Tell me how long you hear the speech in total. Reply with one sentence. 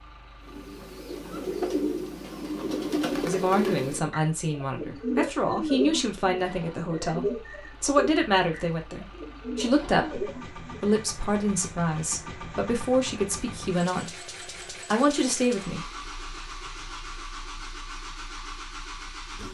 The speech can be heard for 12 seconds in total.